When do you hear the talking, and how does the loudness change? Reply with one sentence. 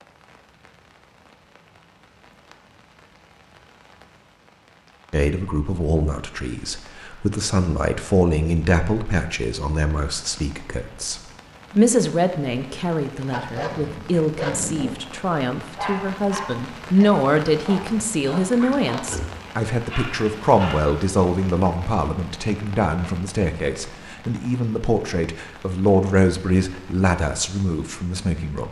The talking can be heard from 5.1 to 28.6 s, at a steady volume.